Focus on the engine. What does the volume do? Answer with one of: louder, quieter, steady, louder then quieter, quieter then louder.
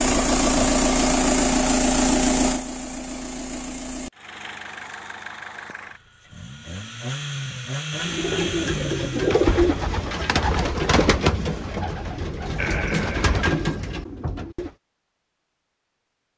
quieter then louder.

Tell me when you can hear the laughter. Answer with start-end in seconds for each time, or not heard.
12.6-13.3.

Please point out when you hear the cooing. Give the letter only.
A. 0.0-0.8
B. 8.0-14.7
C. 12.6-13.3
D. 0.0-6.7
B.